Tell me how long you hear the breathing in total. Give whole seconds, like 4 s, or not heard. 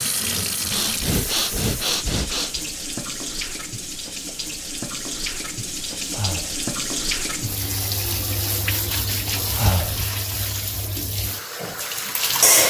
3 s.